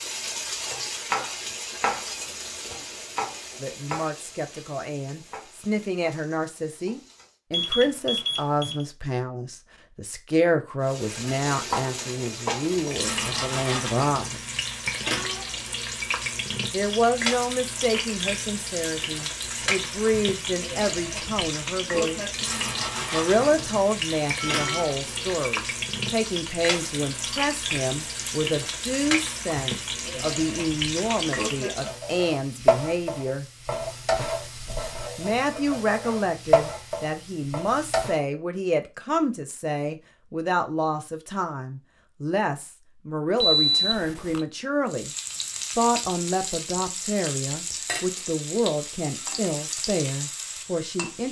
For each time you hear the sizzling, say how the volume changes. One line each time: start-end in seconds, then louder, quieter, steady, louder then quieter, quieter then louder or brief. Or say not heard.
0.0-7.3 quieter
10.8-38.2 steady
44.9-51.2 steady.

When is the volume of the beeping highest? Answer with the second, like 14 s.
44 s.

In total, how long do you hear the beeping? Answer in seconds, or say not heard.
3 s.